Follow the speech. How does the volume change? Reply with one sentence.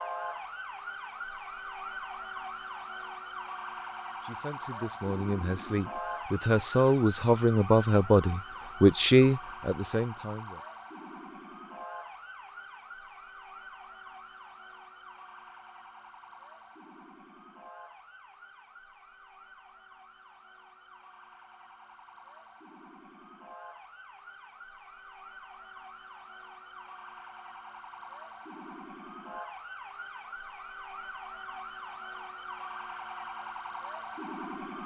The volume of the speech goes up.